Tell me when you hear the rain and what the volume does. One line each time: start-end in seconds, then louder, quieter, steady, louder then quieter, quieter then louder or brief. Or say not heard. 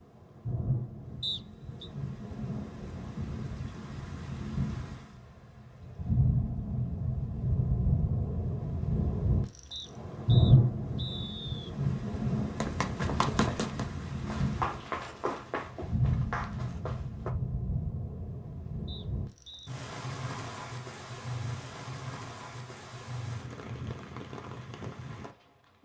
0.0-25.8 louder then quieter.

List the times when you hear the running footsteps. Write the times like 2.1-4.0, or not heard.
12.6-17.4.